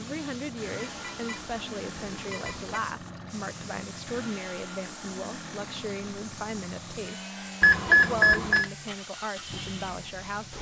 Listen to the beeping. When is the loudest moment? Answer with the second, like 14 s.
8 s.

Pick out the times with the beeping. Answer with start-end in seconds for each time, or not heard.
0.8-2.8, 7.6-8.7.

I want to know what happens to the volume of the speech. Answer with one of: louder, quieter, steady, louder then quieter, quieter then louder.
steady.